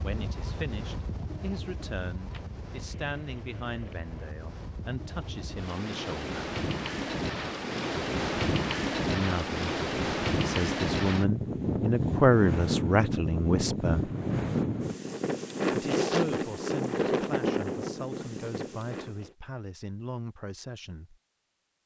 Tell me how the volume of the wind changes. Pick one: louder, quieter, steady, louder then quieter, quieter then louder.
louder.